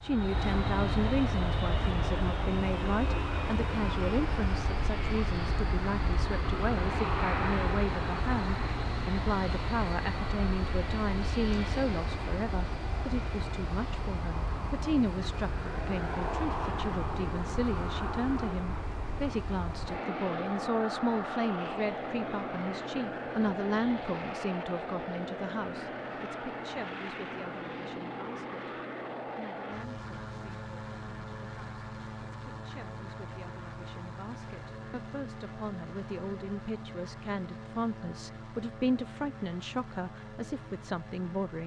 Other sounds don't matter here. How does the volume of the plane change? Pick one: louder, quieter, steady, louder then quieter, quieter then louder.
quieter.